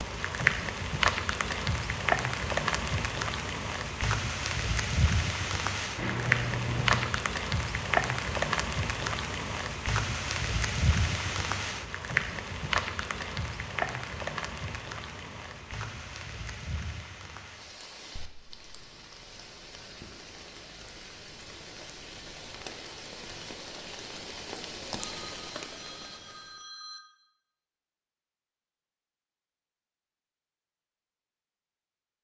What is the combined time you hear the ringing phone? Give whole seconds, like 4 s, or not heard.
3 s.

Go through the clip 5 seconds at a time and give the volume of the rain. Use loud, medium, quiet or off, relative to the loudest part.
loud, loud, loud, quiet, quiet, quiet, off.